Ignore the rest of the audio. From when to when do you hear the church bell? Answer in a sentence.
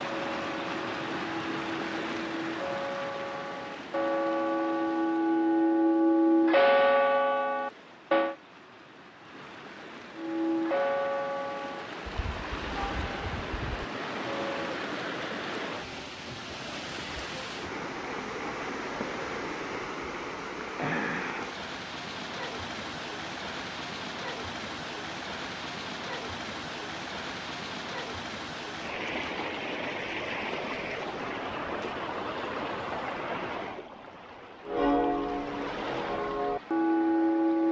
The church bell can be heard from 0.0 to 8.3 s, from 10.2 to 14.8 s and from 34.6 to 37.6 s.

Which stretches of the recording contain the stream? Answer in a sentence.
The stream can be heard from 0.0 to 37.6 s.